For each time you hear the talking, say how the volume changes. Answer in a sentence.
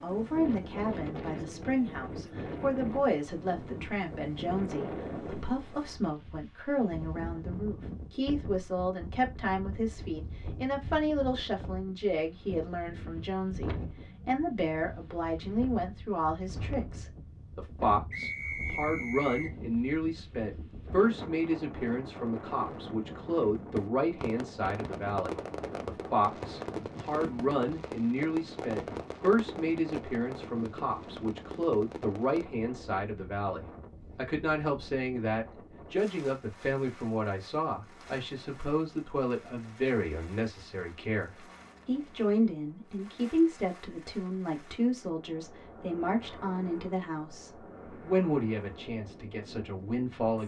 You can hear the talking from 0.0 to 50.4 s, at a steady volume.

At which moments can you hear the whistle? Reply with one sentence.
The whistle can be heard from 18.1 to 19.6 s.